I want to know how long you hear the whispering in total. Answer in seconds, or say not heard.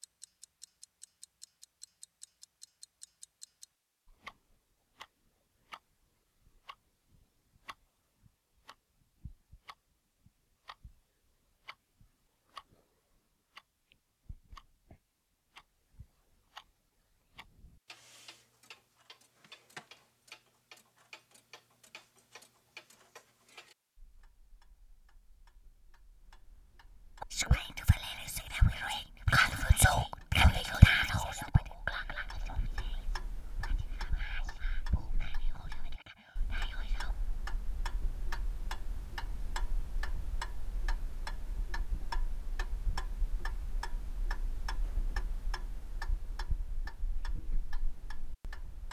10 s.